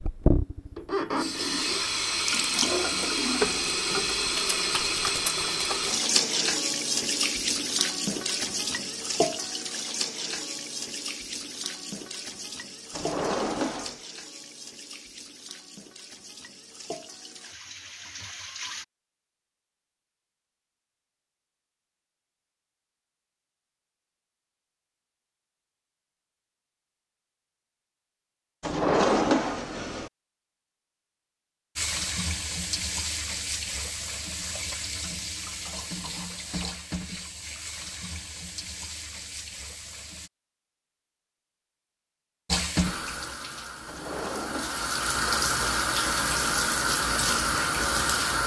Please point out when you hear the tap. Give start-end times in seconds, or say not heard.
0.0-18.9, 31.8-40.3, 42.5-48.4.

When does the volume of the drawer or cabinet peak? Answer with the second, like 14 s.
29 s.